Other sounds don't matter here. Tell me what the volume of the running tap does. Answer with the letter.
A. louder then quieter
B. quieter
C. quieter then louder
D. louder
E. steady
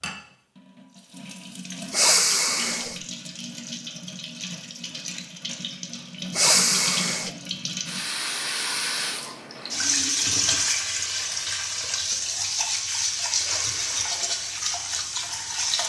D.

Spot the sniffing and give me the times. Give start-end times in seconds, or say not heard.
1.9-3.0, 6.3-7.3, 13.3-14.3.